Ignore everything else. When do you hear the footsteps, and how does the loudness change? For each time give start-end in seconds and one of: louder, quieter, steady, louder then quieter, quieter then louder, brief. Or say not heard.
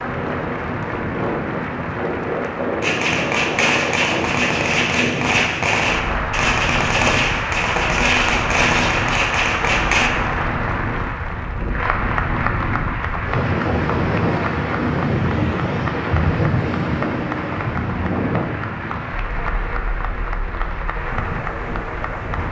not heard.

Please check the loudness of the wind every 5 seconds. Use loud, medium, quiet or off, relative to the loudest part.
loud, medium, loud, loud, medium.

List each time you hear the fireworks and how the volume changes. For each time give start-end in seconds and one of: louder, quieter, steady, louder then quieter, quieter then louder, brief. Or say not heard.
2.8-10.1 steady.